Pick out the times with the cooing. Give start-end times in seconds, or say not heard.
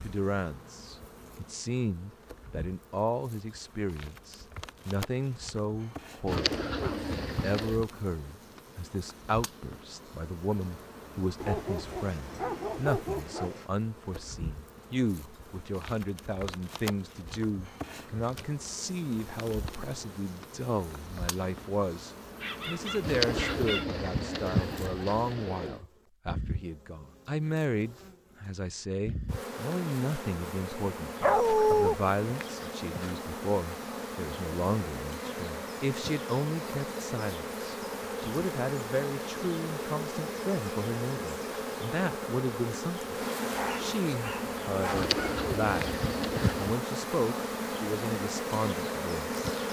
6.2-7.8, 23.0-25.8, 44.9-46.8.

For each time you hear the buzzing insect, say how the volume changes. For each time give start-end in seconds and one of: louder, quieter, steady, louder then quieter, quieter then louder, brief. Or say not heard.
0.0-49.6 louder.